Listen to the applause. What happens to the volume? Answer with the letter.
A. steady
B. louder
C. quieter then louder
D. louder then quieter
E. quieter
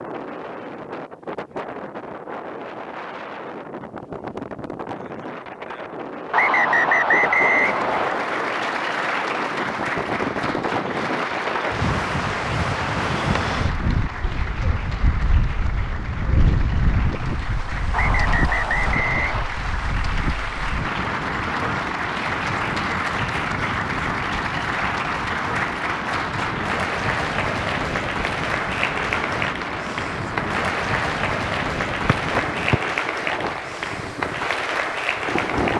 C.